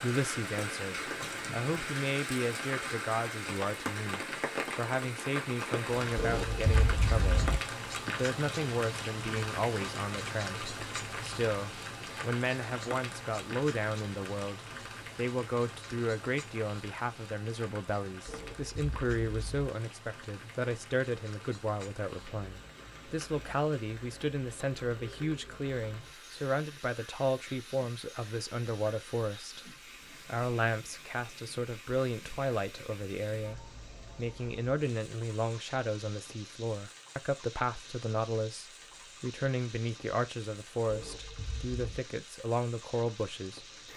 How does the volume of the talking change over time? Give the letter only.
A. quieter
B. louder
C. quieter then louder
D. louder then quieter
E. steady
E.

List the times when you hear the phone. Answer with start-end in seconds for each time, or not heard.
6.2-7.6, 18.2-19.7, 40.9-42.0.